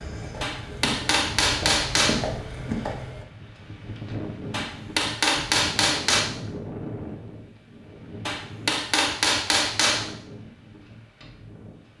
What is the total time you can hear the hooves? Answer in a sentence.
The hooves can be heard for 3 seconds in total.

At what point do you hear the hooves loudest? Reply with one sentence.
The loudest moment of the hooves is at 2 seconds.